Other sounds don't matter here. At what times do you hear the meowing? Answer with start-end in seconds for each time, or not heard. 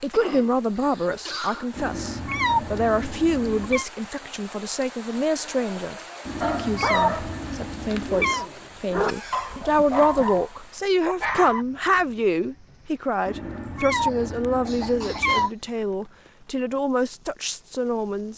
1.8-3.9, 6.2-8.5, 13.2-15.5.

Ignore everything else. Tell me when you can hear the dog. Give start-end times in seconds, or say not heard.
5.8-11.7.